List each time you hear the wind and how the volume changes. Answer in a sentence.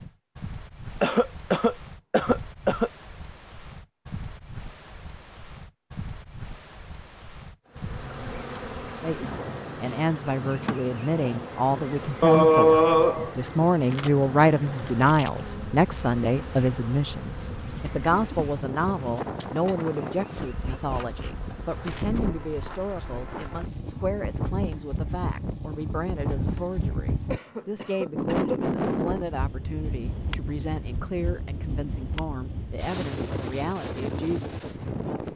You can hear the wind from 0.0 to 35.3 s, getting louder.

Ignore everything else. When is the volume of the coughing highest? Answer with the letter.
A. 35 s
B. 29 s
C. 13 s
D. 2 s
C.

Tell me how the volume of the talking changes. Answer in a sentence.
The volume of the talking goes down.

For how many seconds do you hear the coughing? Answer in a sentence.
You can hear the coughing for 4 seconds altogether.